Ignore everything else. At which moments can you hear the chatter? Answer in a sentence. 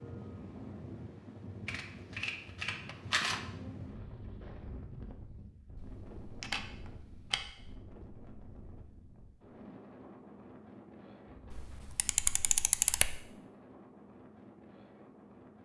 You can't hear the chatter here.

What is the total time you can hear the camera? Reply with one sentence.
The camera can be heard for 5 seconds in total.